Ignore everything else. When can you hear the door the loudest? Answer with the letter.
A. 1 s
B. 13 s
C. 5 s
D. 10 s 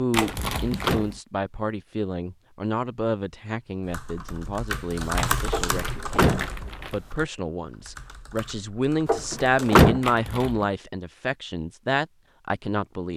D.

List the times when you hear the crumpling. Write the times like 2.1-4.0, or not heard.
0.1-1.2, 5.2-7.0, 10.0-10.7.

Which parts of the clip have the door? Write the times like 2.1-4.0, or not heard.
0.2-1.1, 5.5-7.0, 9.1-10.0.